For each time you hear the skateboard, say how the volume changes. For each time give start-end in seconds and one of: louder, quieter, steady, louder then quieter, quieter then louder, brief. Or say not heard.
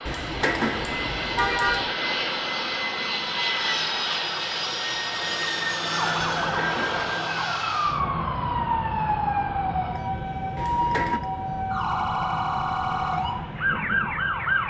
not heard.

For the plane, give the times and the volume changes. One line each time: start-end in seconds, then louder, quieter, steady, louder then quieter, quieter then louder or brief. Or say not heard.
0.0-14.6 quieter.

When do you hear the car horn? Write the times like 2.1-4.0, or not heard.
0.1-1.9, 6.5-7.0, 10.6-11.2.